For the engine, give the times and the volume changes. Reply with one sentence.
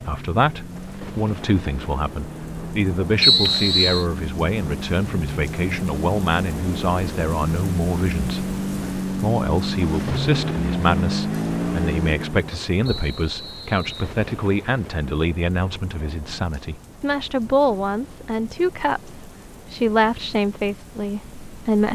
The engine can be heard from 0.0 to 12.6 s, getting louder.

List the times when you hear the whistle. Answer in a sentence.
The whistle can be heard from 3.2 to 4.0 s and from 12.8 to 14.2 s.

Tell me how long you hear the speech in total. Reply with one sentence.
The speech can be heard for 22 seconds in total.